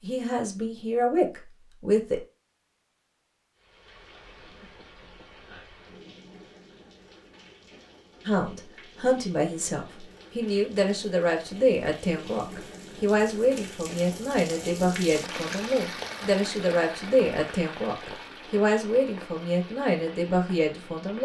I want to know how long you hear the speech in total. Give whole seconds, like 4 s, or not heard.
15 s.